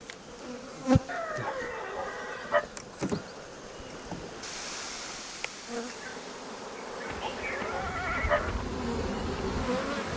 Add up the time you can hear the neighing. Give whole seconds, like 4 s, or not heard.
3 s.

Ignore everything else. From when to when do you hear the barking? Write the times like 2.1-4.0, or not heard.
1.4-2.6, 7.2-8.4.